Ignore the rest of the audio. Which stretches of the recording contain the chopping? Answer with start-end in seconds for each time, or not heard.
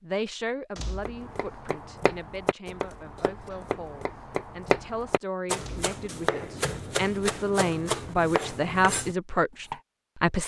1.1-9.8.